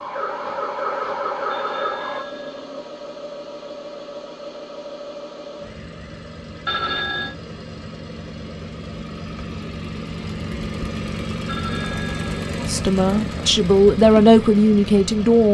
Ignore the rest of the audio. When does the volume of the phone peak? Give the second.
7 s.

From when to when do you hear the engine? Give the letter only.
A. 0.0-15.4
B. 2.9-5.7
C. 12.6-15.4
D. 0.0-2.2
A.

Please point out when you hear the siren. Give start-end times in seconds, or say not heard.
0.0-2.2.